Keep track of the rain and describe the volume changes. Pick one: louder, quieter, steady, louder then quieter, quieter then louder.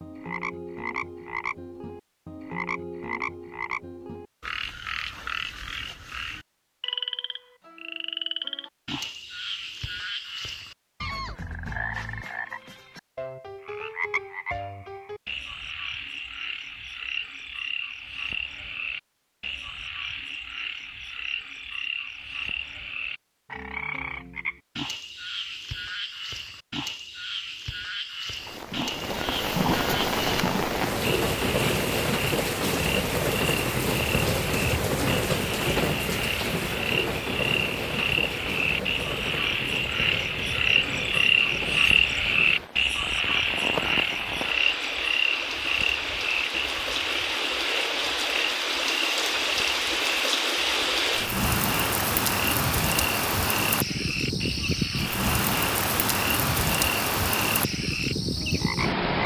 quieter then louder.